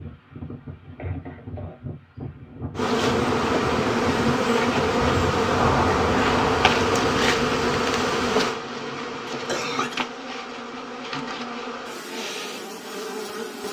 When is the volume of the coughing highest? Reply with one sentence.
The loudest moment of the coughing is at 10 seconds.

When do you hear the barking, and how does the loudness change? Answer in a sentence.
You can't hear the barking here.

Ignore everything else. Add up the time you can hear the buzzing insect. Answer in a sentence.
The buzzing insect can be heard for 11 seconds in total.